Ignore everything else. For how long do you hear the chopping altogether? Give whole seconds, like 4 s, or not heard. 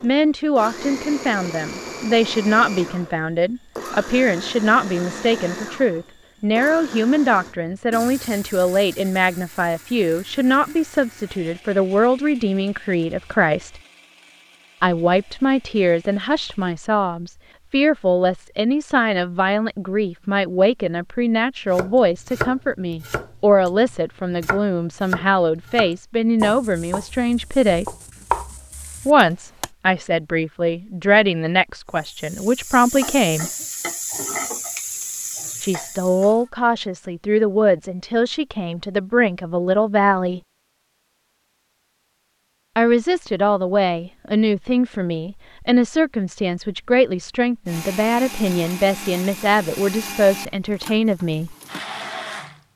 8 s.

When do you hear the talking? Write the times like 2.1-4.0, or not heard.
0.0-13.8, 14.8-27.9, 29.1-33.5, 35.6-40.4, 42.8-51.5.